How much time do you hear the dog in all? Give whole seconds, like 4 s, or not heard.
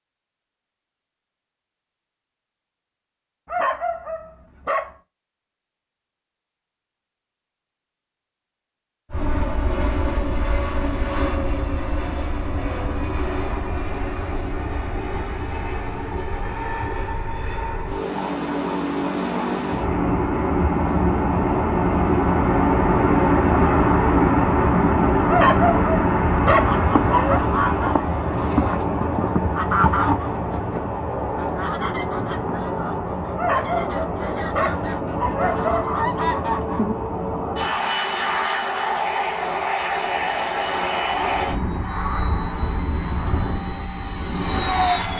6 s.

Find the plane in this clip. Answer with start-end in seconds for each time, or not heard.
9.1-45.1.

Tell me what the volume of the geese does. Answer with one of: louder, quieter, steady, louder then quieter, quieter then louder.
quieter then louder.